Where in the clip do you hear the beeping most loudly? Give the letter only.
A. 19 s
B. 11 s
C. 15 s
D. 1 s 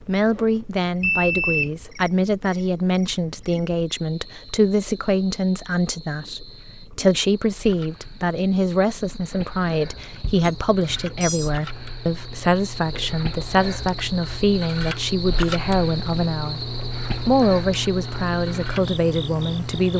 D.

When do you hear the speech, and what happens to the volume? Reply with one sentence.
The speech can be heard from 0.1 to 16.6 s, at a steady volume; and briefly from 17.2 to 19.9 s.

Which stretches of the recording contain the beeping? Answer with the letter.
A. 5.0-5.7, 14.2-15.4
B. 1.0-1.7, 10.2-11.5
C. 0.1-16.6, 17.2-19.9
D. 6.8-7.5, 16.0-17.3
B.